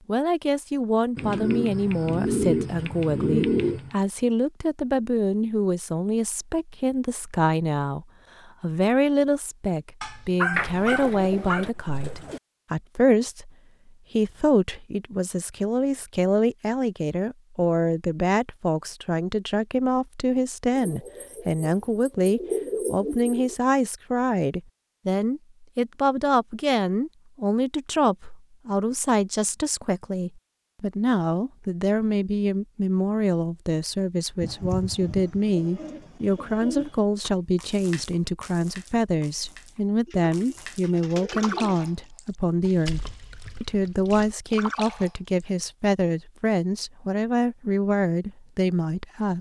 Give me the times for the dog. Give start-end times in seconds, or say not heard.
10.0-11.7.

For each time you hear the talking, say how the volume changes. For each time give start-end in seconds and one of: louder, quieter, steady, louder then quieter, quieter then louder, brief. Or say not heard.
0.1-13.5 steady
14.1-49.3 steady.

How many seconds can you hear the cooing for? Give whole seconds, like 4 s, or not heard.
12 s.